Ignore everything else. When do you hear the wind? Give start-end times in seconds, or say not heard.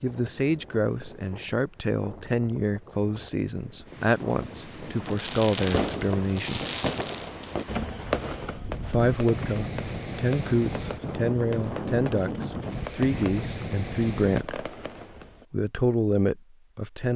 0.0-14.4.